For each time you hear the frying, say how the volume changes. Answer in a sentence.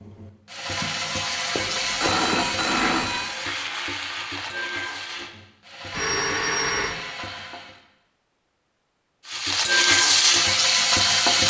You can hear the frying from 0.0 to 7.8 s, getting quieter; and briefly from 9.2 to 11.4 s.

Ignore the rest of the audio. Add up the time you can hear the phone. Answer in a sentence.
The phone can be heard for 3 seconds in total.